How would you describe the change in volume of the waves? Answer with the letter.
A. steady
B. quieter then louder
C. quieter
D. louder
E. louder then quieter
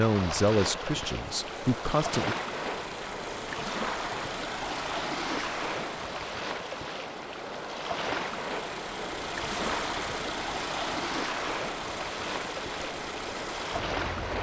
A.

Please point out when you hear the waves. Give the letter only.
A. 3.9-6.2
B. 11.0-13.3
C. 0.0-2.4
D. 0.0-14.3
D.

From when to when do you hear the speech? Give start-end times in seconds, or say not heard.
0.0-2.4.